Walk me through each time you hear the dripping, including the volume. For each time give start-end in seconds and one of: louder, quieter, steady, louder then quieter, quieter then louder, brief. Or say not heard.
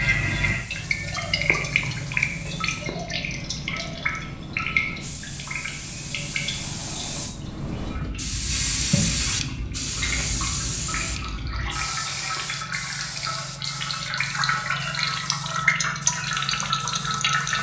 0.0-17.5 quieter then louder.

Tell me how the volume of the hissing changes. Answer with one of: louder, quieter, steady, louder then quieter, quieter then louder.
louder then quieter.